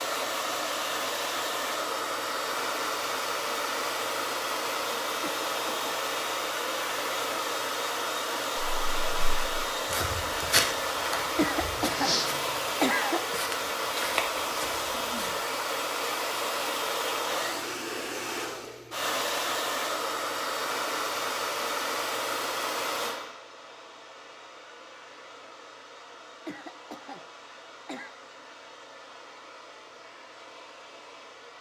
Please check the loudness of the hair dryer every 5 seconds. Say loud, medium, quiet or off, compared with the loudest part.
loud, loud, loud, loud, loud, quiet, quiet.